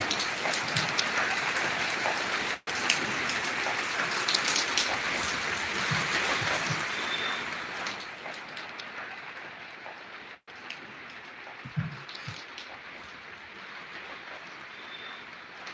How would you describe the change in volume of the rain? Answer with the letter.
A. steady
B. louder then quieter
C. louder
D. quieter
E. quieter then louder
D.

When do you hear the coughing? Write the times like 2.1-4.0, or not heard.
0.6-1.1, 5.8-6.8, 11.7-12.4.